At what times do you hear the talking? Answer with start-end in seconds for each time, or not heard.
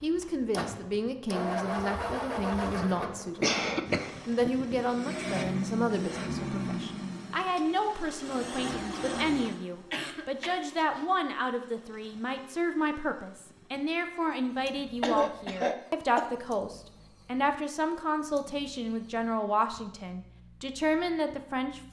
0.0-21.8.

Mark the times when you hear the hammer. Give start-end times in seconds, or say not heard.
not heard.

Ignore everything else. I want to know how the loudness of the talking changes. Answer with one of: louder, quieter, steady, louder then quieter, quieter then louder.
steady.